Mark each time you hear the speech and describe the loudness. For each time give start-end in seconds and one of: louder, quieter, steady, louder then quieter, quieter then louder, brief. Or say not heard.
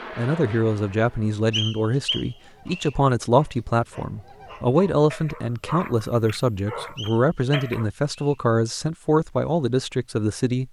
0.1-10.6 steady.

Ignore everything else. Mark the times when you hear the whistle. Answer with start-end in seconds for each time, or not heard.
1.5-3.0, 7.0-8.3.